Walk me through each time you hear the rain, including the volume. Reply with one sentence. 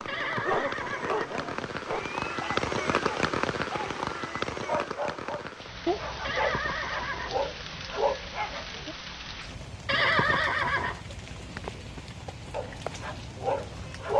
The rain can be heard from 0.0 to 14.1 s, getting quieter.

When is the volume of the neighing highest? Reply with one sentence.
The loudest moment of the neighing is at 10 seconds.